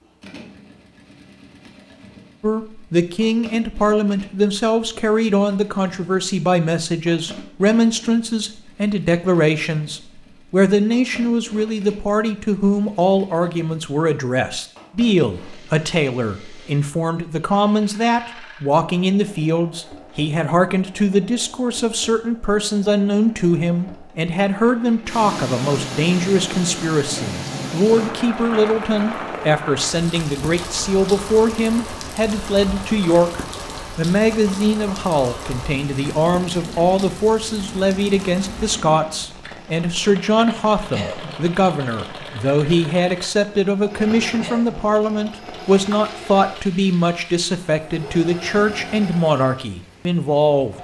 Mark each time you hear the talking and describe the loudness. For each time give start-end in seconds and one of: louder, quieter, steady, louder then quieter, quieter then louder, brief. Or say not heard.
2.4-50.7 steady.